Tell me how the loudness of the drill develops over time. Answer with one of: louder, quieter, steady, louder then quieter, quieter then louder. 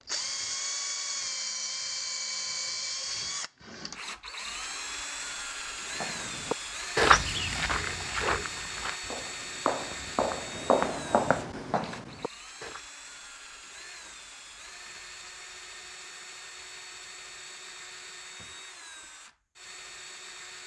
quieter.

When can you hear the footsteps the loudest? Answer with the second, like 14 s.
7 s.